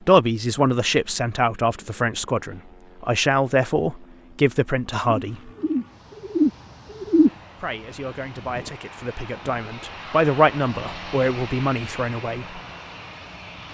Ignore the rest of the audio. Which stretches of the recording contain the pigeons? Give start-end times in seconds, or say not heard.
5.0-7.3.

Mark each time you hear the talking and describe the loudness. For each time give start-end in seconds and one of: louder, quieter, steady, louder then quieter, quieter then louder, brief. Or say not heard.
0.1-5.5 steady
7.5-12.6 louder then quieter.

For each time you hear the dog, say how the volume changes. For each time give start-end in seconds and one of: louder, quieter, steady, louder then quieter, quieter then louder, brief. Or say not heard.
not heard.